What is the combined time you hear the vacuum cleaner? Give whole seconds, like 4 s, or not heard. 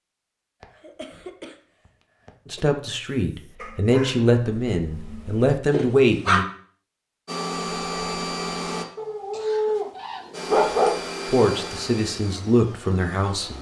5 s.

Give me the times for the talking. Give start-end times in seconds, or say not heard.
2.5-6.5, 11.2-13.5.